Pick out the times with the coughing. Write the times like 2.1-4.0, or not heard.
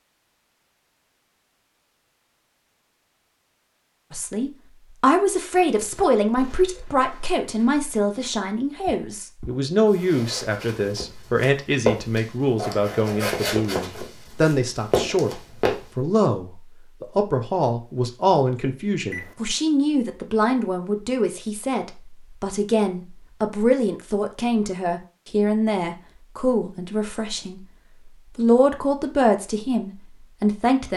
not heard.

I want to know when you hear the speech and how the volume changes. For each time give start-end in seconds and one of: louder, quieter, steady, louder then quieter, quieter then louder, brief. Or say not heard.
4.1-27.6 steady
28.4-30.9 brief.